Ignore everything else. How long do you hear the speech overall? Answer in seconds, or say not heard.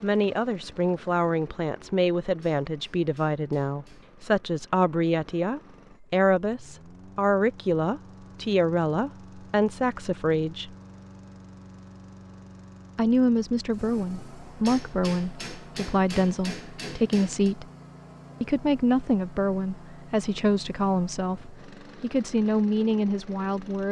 21 s.